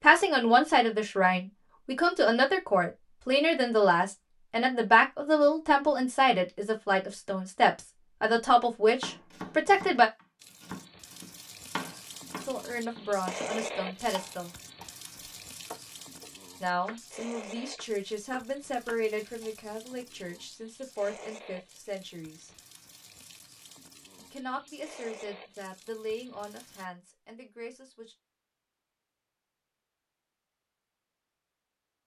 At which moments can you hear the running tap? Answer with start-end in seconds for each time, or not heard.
10.3-26.9.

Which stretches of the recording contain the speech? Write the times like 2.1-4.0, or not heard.
0.0-10.1, 12.4-14.5, 16.6-22.5, 24.1-28.1.